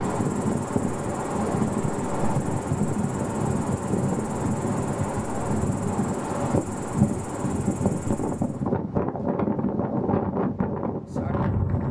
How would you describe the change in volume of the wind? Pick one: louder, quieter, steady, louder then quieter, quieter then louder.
steady.